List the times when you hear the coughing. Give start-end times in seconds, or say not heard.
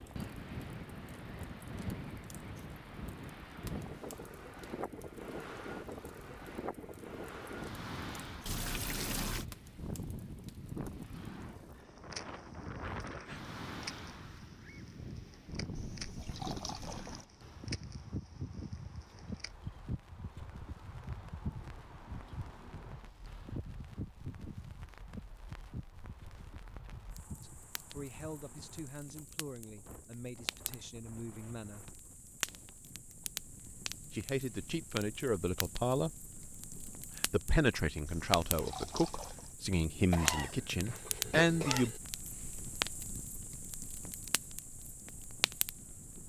40.1-42.0.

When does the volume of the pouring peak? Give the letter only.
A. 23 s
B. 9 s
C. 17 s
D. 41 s
B.